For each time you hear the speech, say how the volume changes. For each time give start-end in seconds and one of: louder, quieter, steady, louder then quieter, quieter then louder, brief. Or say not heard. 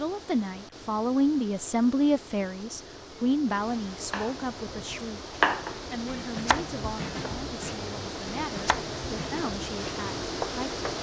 0.0-10.8 quieter.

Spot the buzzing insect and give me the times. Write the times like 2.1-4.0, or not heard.
not heard.